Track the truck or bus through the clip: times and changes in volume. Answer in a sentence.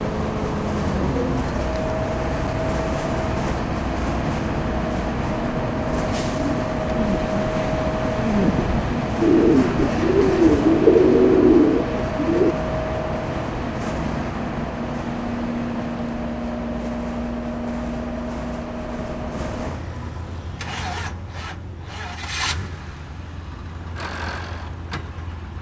You can hear the truck or bus from 0.0 to 25.5 s, getting quieter.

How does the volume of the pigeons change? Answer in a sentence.
The volume of the pigeons goes up.